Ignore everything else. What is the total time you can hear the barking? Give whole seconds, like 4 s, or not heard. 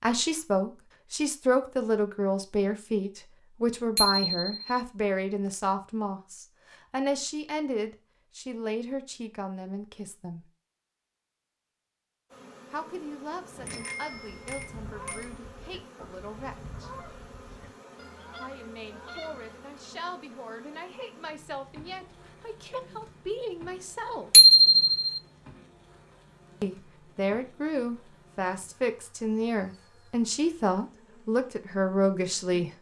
not heard.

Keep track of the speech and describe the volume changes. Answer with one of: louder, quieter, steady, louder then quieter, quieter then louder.
quieter then louder.